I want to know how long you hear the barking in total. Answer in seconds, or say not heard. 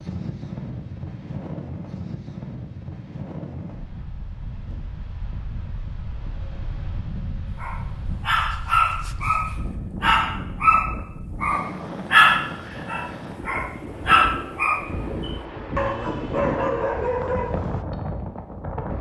10 s.